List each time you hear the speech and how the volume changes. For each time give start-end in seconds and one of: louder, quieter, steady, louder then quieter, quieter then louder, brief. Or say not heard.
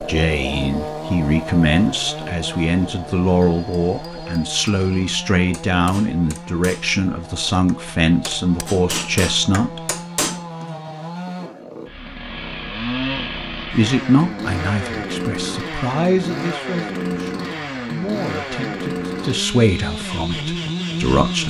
0.0-9.8 steady
13.7-21.4 quieter then louder.